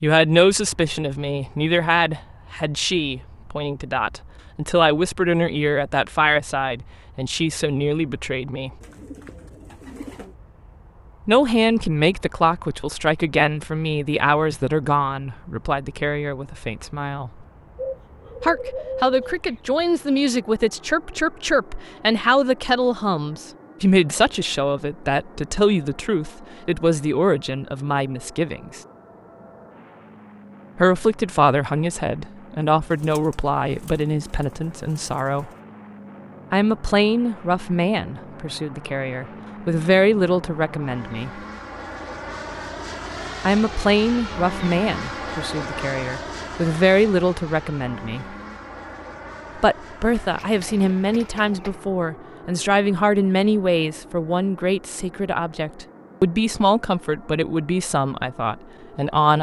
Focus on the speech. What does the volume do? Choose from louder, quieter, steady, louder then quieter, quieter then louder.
steady.